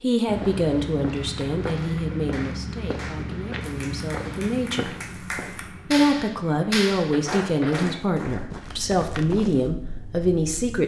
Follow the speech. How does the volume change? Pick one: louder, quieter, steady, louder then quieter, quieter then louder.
quieter then louder.